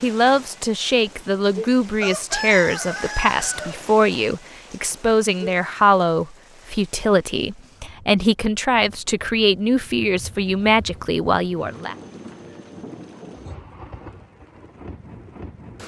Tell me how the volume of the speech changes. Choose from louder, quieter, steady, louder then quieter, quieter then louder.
steady.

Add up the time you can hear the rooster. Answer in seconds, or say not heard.
2 s.